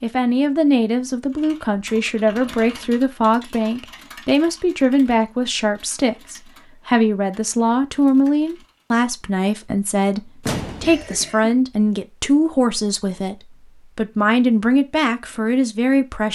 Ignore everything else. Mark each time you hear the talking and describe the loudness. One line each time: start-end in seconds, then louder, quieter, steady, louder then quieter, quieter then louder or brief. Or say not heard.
0.0-16.3 steady.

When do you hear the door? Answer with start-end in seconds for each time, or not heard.
10.4-11.2.